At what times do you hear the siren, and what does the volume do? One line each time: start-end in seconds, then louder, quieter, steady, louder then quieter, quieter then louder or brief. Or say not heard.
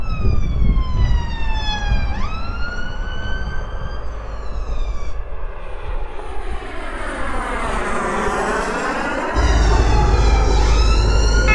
0.0-5.2 quieter
9.3-11.5 brief.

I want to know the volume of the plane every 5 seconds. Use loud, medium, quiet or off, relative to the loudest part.
quiet, loud, loud.